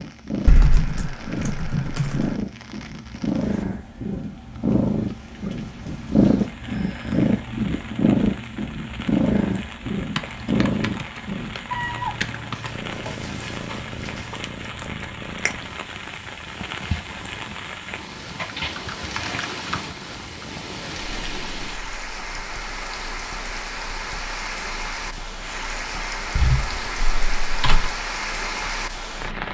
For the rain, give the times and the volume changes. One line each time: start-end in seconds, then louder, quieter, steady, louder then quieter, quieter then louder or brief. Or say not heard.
0.0-29.5 louder.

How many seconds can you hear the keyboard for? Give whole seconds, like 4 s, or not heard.
8 s.